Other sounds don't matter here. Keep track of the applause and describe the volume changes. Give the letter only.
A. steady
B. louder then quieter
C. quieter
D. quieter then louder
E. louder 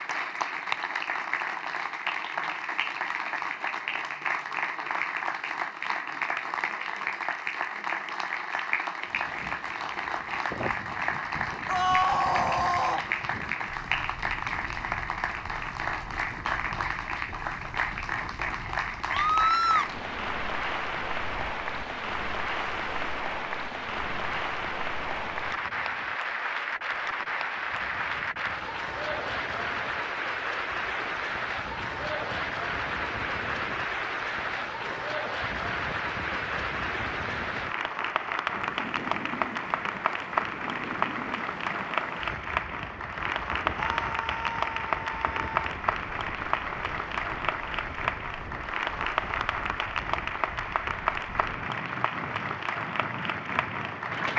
A.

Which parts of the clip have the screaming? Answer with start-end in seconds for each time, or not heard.
11.7-13.1, 19.1-19.9, 43.8-45.6.